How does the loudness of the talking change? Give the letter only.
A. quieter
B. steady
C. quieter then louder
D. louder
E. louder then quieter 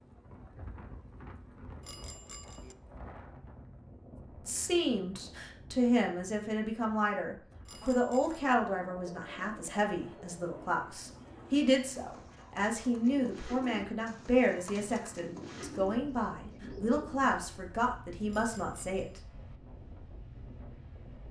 B.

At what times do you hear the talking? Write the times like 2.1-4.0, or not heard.
4.5-19.2.